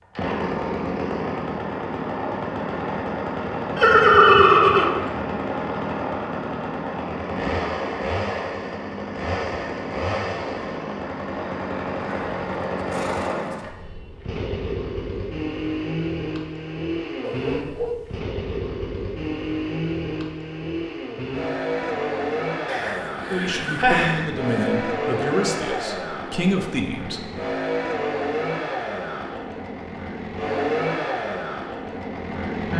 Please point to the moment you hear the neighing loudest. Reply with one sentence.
The volume of the neighing peaks at 4 seconds.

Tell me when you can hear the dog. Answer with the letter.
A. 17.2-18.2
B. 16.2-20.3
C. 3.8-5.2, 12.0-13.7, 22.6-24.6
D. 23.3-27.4
A.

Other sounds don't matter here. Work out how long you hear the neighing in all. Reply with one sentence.
You can hear the neighing for 5 seconds altogether.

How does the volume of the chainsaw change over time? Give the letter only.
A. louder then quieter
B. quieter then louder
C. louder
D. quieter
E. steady
E.